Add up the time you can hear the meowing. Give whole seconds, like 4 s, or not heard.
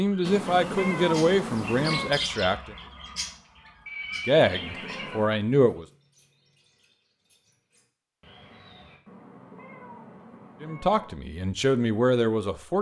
5 s.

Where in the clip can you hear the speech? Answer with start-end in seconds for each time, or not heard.
0.0-2.8, 4.2-5.8, 10.6-12.7.